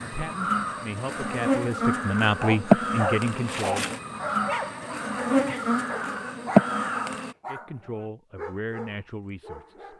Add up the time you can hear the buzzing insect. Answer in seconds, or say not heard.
7 s.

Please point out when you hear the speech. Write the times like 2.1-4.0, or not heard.
0.0-4.0, 7.5-9.9.